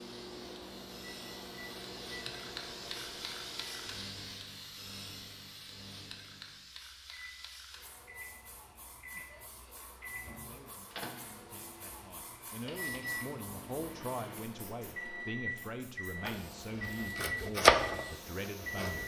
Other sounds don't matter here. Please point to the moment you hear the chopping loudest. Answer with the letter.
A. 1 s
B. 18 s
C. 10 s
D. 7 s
B.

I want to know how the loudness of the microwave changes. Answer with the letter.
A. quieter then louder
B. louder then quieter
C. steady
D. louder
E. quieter
A.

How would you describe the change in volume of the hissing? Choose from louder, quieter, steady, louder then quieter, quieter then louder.
quieter.